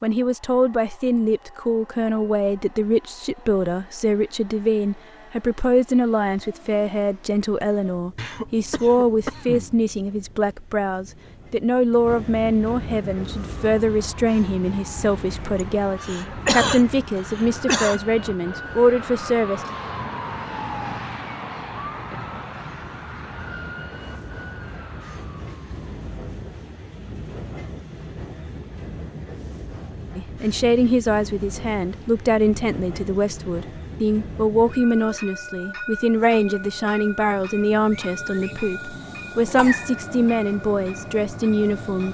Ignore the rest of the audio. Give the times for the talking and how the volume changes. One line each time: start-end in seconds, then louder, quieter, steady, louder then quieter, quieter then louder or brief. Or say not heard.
0.0-19.6 steady
30.1-42.0 steady.